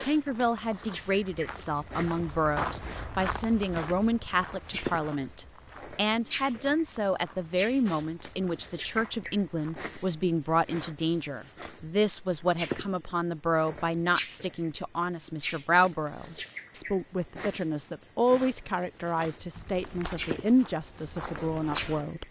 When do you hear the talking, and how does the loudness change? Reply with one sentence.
You can hear the talking from 0.0 to 22.2 s, at a steady volume.